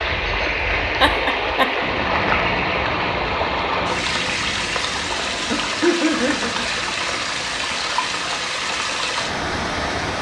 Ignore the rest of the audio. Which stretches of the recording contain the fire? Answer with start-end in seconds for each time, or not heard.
not heard.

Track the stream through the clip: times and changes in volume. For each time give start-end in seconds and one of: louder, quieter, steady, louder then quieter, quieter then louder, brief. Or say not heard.
0.0-10.1 steady.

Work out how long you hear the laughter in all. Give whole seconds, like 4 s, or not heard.
2 s.